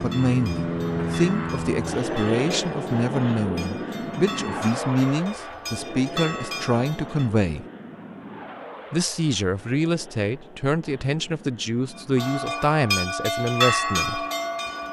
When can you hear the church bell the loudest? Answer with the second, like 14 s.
14 s.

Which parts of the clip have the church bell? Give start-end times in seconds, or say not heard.
0.0-7.2, 11.9-14.8.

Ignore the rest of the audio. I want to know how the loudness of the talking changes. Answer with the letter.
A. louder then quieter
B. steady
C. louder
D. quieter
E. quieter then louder
B.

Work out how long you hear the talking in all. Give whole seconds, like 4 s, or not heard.
13 s.